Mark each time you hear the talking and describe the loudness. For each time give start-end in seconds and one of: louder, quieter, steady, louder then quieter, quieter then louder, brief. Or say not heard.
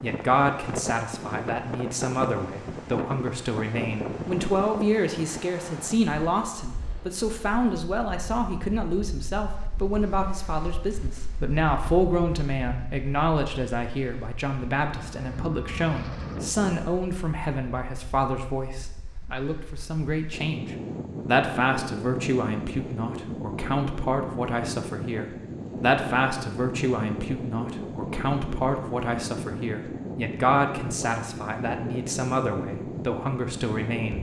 0.0-34.1 steady.